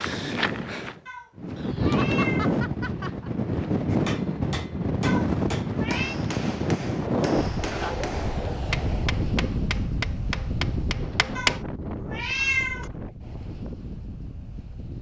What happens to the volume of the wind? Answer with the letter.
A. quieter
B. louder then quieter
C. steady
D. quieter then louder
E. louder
A.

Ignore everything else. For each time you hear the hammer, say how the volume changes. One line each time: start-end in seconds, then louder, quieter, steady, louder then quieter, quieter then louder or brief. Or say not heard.
3.9-11.6 steady.